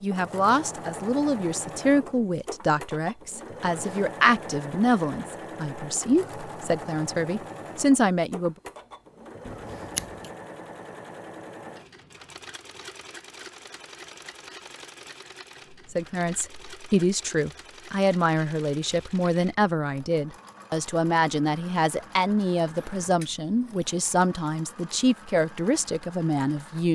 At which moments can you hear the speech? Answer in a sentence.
You can hear the speech from 0.0 to 8.6 s and from 15.9 to 26.9 s.